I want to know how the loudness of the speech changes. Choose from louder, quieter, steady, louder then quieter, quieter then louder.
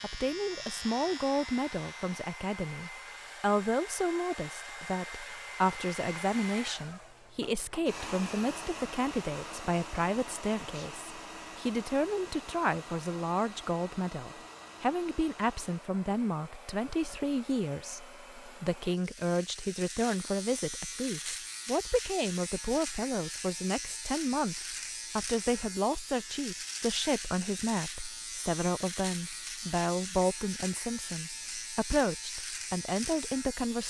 steady.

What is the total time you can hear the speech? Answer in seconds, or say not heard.
34 s.